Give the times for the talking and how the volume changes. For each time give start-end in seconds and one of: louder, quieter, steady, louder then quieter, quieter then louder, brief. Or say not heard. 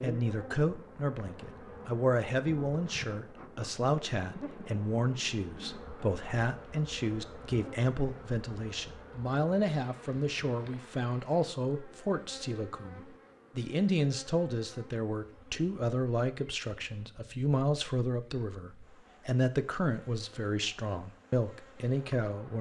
0.0-22.5 steady.